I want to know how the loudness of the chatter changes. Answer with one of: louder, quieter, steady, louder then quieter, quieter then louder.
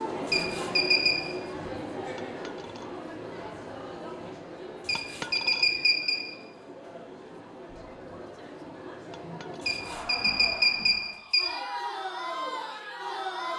quieter then louder.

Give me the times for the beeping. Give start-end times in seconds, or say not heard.
0.2-1.1, 4.8-6.2, 9.7-11.4.